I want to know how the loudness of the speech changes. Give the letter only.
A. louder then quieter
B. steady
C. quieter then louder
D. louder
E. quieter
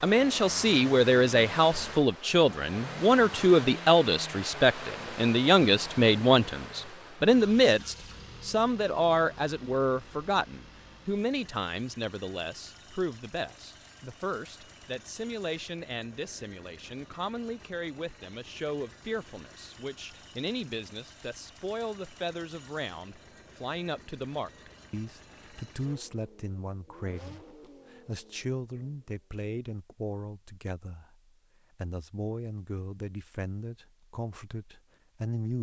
E.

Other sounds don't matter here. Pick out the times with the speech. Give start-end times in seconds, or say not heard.
0.0-31.1, 31.8-35.5.